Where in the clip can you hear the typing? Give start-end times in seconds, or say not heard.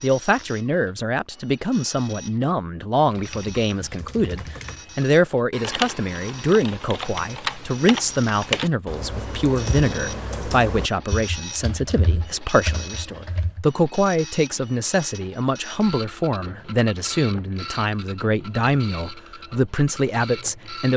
3.0-13.7.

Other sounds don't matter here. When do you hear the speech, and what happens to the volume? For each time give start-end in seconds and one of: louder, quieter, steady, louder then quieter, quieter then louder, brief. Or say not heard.
0.0-20.9 steady.